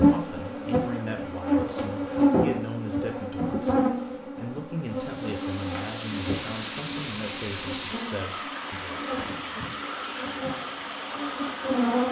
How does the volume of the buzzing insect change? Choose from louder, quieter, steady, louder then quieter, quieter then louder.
quieter.